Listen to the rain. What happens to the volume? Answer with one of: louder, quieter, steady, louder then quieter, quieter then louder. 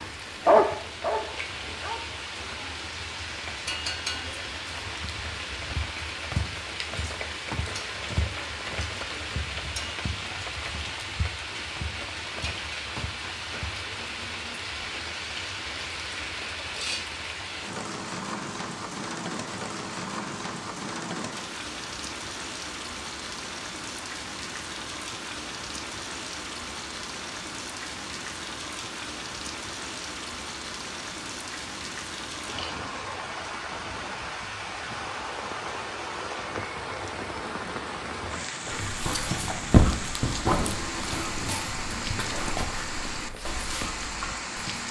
steady.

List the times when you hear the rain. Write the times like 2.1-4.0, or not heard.
0.0-44.8.